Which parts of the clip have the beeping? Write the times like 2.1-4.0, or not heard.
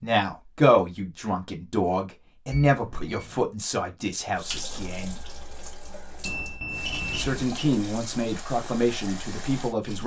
2.5-3.5, 6.2-7.5.